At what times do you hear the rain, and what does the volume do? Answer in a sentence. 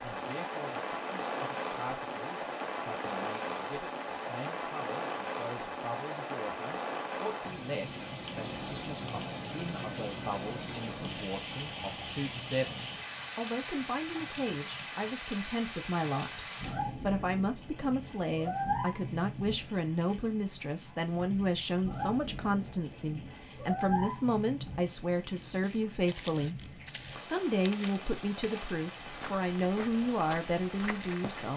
You can hear the rain from 0.0 to 31.5 s, getting quieter.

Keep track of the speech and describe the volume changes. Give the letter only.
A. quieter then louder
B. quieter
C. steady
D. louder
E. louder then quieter
D.